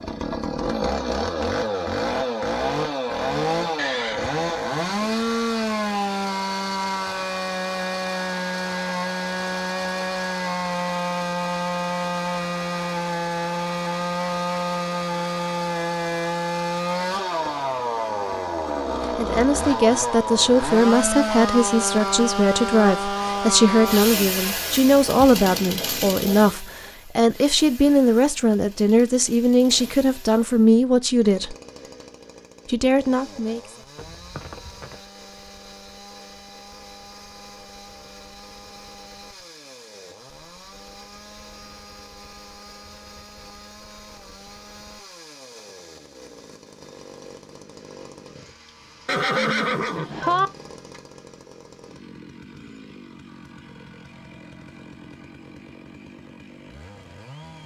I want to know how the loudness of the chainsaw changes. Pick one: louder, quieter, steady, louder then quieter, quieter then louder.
quieter.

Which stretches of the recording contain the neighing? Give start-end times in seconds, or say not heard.
3.8-5.1, 34.0-35.0, 49.0-50.5.